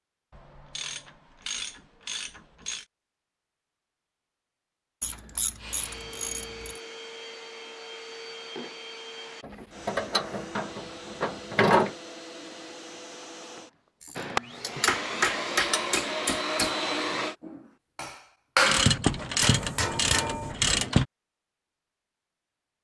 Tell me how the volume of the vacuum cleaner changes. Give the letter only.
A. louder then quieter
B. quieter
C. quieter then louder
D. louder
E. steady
D.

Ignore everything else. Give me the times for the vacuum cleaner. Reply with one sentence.
You can hear the vacuum cleaner from 5.5 to 17.4 s.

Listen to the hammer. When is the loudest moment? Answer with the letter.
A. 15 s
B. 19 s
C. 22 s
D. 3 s
B.